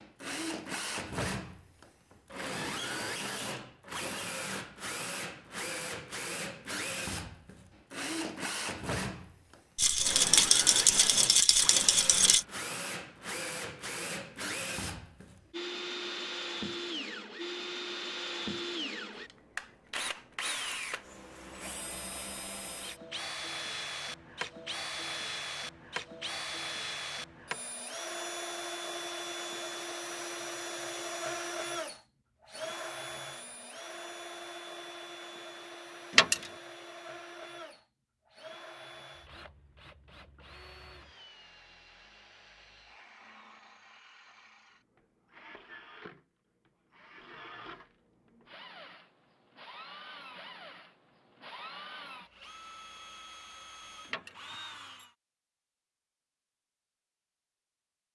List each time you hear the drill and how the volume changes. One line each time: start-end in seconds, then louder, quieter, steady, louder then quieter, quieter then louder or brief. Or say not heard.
0.0-55.1 quieter.